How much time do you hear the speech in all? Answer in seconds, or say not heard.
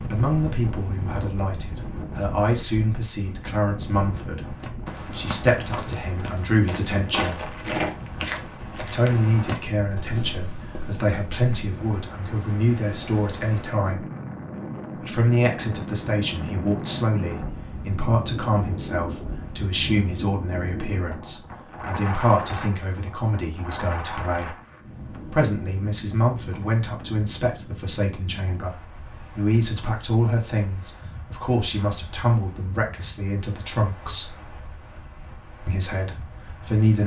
33 s.